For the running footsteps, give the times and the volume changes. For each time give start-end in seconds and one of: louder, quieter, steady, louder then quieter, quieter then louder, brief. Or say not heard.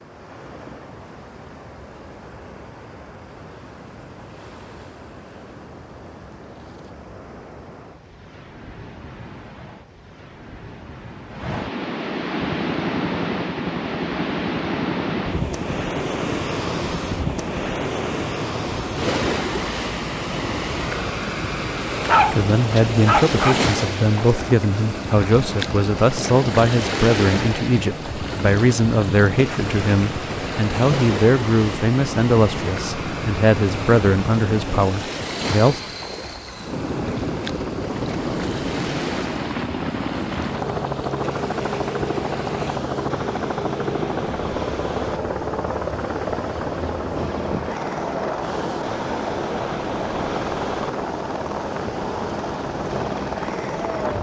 not heard.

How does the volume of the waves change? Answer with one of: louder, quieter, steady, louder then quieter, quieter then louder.
louder then quieter.